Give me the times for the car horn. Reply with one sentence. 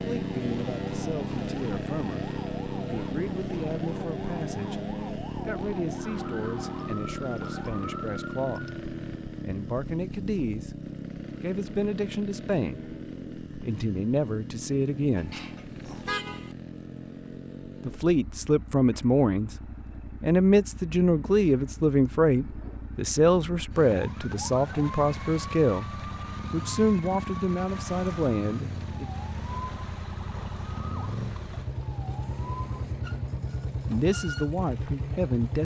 You can hear the car horn from 15.2 to 16.6 s.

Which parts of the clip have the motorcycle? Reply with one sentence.
You can hear the motorcycle from 0.0 to 35.5 s.